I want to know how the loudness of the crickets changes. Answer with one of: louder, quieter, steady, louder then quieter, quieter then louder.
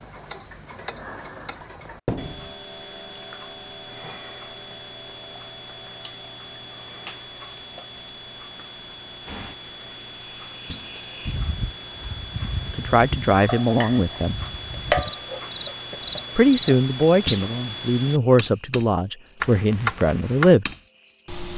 quieter.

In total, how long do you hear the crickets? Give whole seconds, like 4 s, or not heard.
12 s.